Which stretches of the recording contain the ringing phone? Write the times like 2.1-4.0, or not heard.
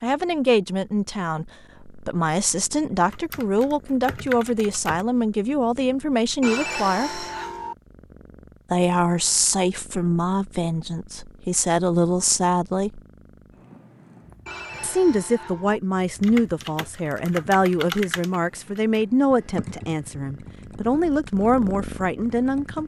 6.4-7.8, 14.4-15.8.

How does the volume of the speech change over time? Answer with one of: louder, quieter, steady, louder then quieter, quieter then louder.
steady.